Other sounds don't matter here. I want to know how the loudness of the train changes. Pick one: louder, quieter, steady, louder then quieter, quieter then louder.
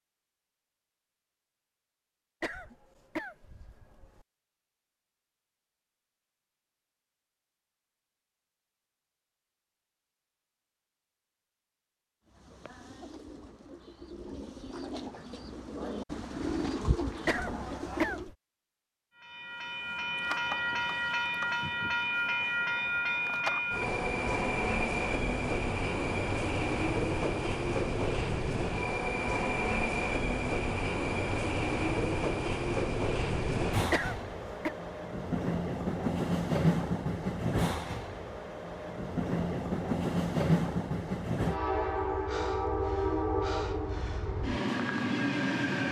steady.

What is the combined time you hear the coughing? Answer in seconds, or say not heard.
4 s.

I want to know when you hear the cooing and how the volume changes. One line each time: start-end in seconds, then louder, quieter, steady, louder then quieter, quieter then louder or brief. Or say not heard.
12.2-18.3 louder.